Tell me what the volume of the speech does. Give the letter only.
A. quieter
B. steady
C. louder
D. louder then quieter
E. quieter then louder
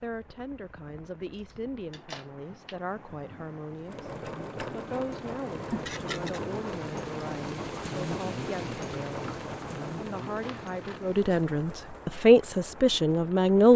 C.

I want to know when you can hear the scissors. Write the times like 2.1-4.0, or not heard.
1.4-2.8, 5.7-6.4, 10.4-11.0.